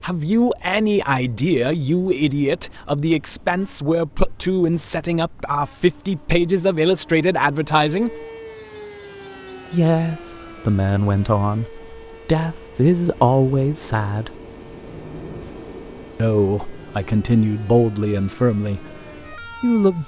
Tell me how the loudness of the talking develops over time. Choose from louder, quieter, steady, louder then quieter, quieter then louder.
steady.